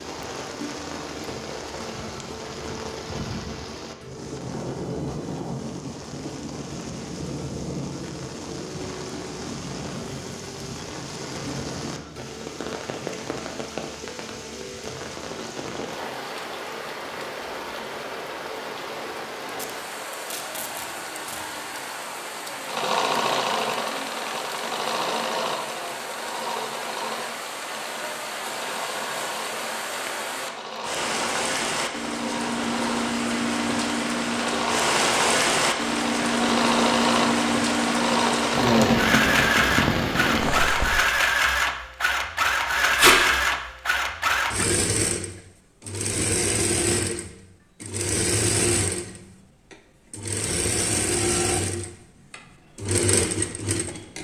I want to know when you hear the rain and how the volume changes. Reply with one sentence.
You can hear the rain from 0.0 to 41.1 s, getting louder.